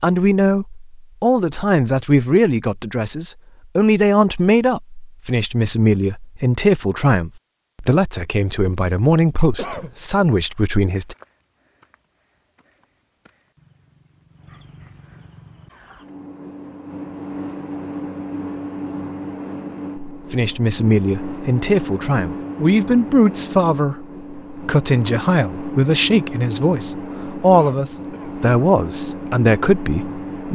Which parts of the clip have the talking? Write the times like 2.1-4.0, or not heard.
0.0-11.2, 20.1-30.5.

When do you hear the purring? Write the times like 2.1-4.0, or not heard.
not heard.